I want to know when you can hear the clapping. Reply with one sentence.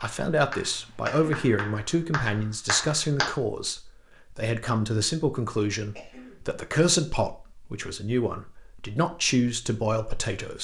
You can hear the clapping from 0.0 to 3.3 s.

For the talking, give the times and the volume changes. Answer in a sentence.
The talking can be heard from 0.0 to 10.5 s, at a steady volume.